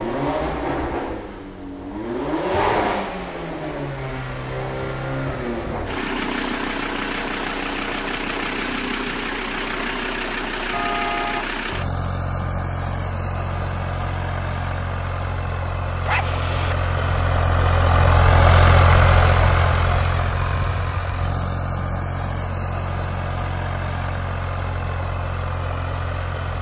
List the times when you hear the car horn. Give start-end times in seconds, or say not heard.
10.7-11.4.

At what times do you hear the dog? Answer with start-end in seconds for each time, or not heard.
16.1-16.8.